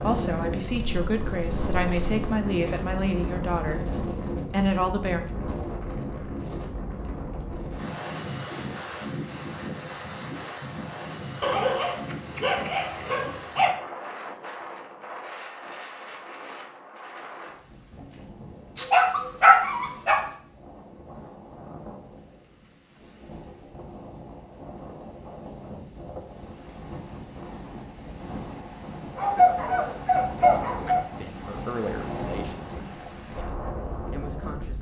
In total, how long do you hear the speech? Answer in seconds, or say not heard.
9 s.